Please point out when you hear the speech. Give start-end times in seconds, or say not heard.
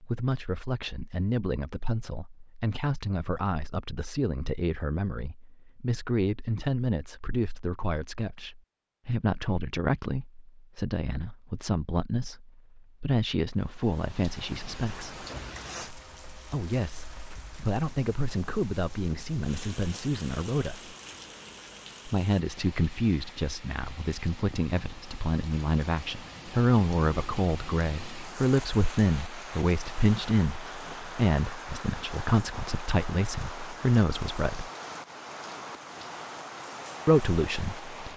0.0-15.2, 16.5-20.9, 22.1-34.6, 37.0-38.1.